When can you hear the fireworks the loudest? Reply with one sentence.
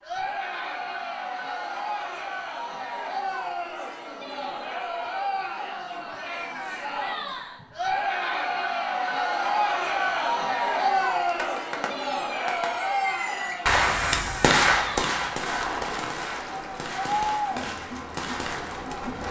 The loudest moment of the fireworks is at 15 seconds.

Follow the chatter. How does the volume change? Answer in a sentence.
The loudness of the chatter goes up, then down.